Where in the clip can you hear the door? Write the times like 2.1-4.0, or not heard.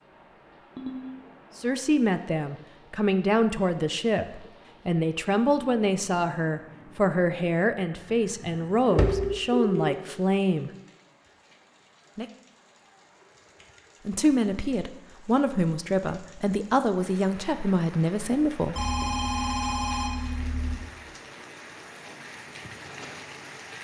8.4-9.2.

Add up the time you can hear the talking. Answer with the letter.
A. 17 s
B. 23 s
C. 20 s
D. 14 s
D.